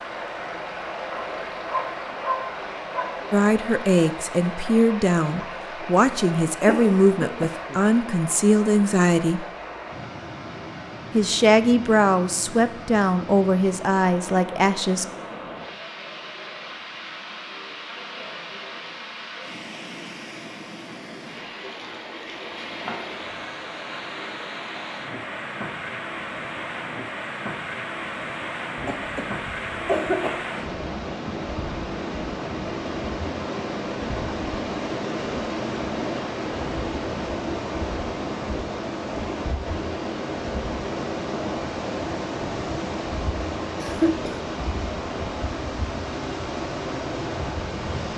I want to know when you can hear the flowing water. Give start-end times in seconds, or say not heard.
0.0-48.1.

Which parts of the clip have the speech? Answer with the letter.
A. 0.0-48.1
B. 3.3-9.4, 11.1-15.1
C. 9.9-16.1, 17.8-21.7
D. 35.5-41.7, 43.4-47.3
B.